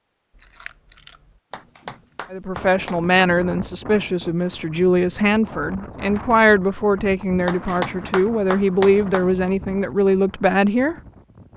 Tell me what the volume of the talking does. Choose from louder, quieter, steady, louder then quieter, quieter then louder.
steady.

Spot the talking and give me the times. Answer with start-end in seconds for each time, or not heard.
2.3-10.9.